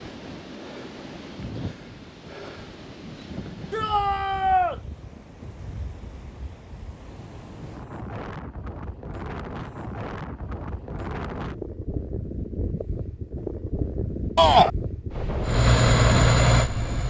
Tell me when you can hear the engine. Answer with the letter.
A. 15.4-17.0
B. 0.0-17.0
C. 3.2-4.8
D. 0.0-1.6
A.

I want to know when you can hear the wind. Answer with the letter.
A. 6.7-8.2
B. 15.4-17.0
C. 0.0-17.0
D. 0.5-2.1
C.